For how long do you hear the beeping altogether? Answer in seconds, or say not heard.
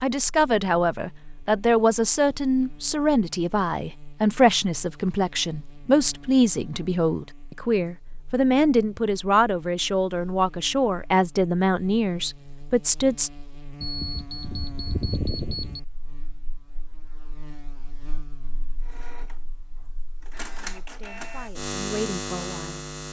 2 s.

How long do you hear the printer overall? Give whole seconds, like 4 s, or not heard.
3 s.